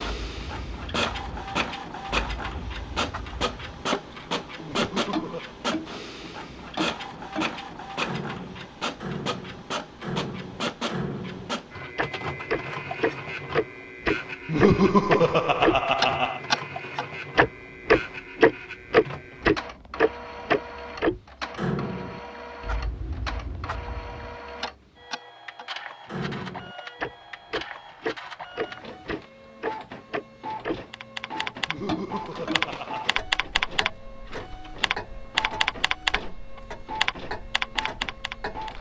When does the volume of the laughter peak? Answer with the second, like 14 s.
15 s.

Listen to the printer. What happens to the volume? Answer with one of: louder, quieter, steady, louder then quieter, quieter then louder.
quieter.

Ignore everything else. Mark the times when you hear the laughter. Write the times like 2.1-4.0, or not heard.
4.6-5.5, 14.4-16.4, 31.6-33.1.